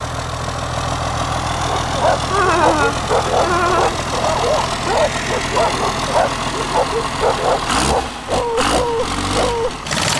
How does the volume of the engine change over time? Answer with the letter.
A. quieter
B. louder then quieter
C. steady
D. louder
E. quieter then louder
C.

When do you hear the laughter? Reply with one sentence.
You can hear the laughter from 2.3 to 4.0 s.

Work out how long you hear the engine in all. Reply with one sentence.
You can hear the engine for 10 seconds altogether.